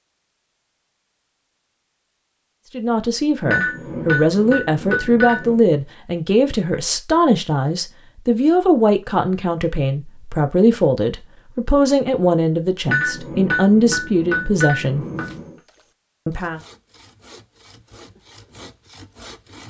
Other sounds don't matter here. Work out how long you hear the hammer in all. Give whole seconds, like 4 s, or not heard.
5 s.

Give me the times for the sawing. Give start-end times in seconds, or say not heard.
15.0-19.6.